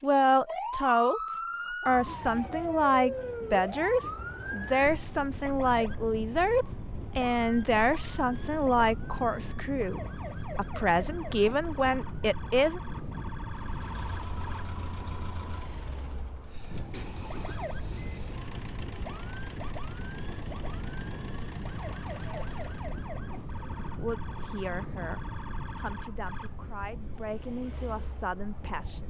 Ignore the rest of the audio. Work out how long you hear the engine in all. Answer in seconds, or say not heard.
10 s.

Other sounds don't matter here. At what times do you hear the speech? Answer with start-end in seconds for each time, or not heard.
0.0-12.8, 23.6-29.0.